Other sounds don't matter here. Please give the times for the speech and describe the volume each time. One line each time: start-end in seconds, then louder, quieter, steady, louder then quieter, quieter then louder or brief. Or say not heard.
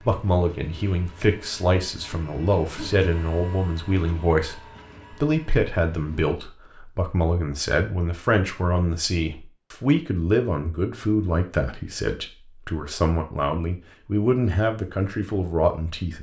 0.1-16.1 steady.